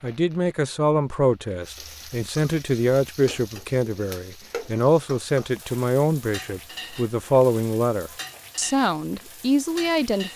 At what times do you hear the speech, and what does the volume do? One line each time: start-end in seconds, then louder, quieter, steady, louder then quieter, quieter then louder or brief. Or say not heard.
0.0-10.3 steady.